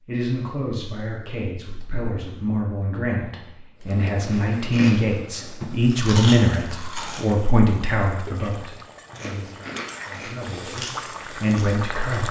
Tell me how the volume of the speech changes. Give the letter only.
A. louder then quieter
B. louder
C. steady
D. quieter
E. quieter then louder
A.